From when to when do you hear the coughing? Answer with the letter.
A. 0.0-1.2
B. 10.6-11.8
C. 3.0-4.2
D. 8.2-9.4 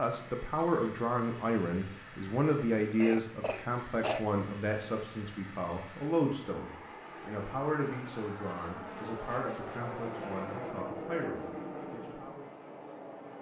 C.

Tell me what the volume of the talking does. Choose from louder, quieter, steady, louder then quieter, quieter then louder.
quieter.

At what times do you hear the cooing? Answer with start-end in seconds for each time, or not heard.
not heard.